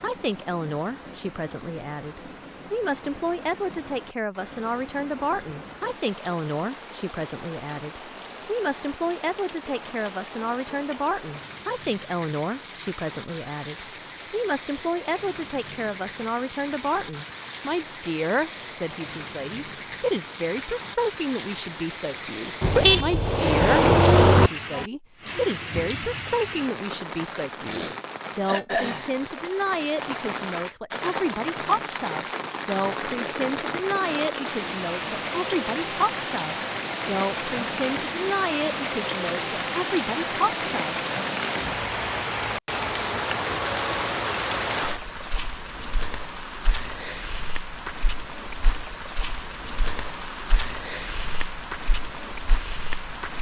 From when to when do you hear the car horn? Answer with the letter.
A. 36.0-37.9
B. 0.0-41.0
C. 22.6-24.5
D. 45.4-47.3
C.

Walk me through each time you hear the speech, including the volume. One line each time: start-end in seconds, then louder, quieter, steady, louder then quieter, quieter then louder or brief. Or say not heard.
0.0-41.0 steady.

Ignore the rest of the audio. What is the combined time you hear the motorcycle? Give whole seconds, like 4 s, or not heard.
not heard.